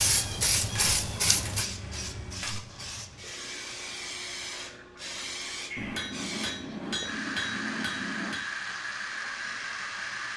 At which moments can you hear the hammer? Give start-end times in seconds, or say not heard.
0.6-2.6, 5.8-8.5.